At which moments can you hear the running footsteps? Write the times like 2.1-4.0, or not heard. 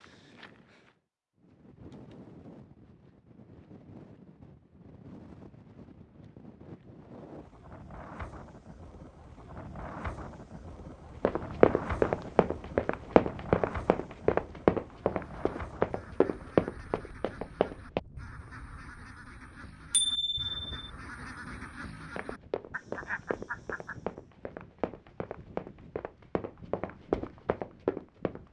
11.2-18.0, 22.1-28.4.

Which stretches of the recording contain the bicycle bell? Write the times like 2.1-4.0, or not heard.
19.9-20.8.